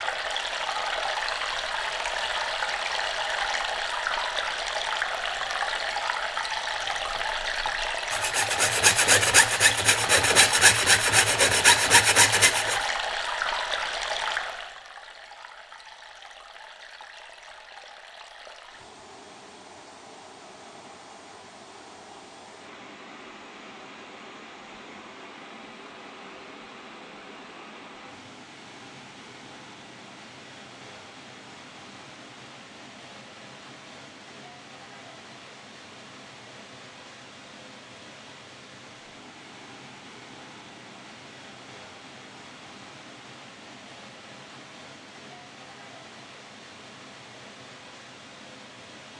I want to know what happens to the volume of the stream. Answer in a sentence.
The loudness of the stream goes down.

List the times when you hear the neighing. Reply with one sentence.
The neighing can't be heard in this clip.